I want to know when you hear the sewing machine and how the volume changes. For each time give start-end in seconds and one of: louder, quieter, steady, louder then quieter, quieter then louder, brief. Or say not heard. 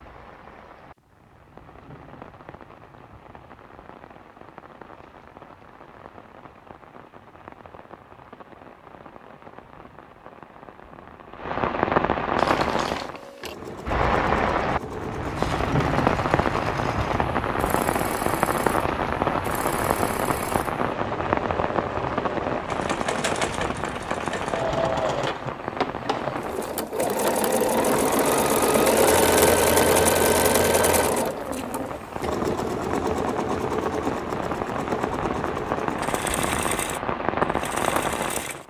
12.3-38.6 louder then quieter.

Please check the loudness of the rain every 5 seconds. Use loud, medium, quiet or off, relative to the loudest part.
quiet, quiet, loud, loud, loud, medium, medium, loud.